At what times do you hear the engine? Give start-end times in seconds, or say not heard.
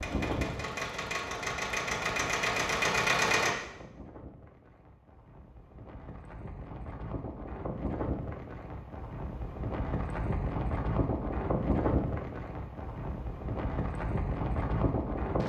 0.0-3.5.